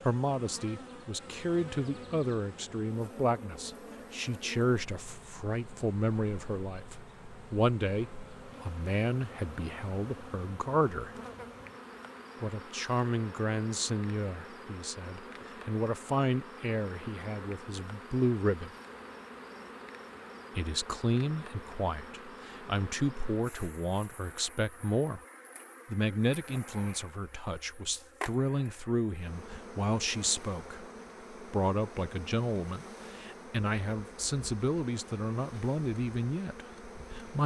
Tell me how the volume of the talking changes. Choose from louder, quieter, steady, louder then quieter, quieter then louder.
steady.